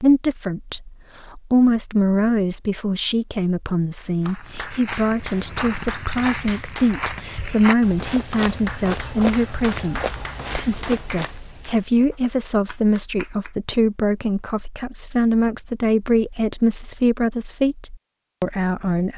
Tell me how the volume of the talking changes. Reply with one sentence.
The volume of the talking stays about the same.